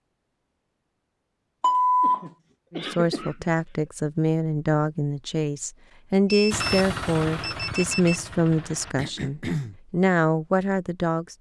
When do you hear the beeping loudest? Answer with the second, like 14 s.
2 s.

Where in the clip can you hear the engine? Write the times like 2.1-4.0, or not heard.
6.5-8.9.